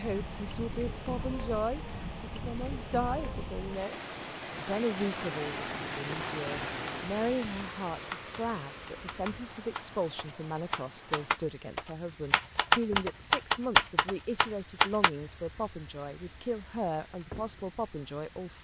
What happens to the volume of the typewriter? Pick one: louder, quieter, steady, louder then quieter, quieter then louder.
louder.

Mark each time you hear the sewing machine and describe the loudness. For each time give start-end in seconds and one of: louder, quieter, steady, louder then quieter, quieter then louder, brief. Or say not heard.
not heard.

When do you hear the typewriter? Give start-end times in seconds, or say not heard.
6.8-15.1.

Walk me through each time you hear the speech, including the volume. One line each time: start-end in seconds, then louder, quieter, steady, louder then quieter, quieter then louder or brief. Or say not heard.
0.0-18.5 steady.